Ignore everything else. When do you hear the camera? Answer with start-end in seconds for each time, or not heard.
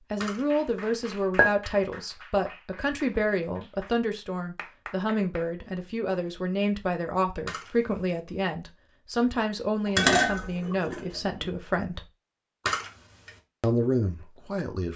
0.2-0.9, 7.5-8.2, 12.7-13.3.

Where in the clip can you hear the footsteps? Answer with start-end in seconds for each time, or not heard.
not heard.